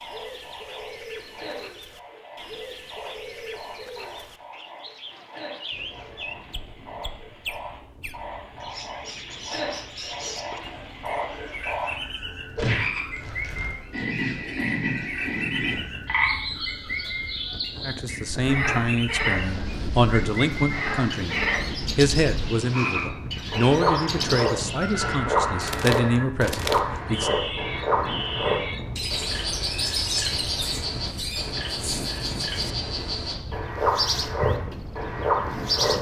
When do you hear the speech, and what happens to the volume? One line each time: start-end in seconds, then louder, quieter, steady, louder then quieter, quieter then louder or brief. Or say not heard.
17.9-27.4 steady.